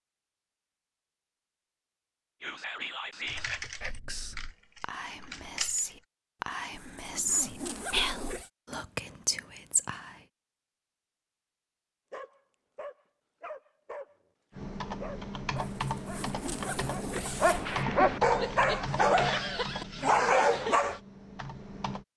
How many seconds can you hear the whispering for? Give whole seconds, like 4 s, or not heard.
8 s.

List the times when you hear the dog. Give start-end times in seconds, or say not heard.
12.1-21.0.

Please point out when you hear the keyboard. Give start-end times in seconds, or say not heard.
3.2-6.0, 14.5-22.1.